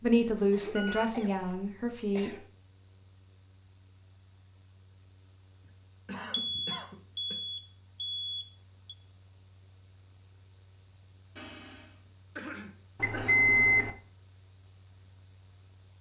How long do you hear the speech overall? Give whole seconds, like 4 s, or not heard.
2 s.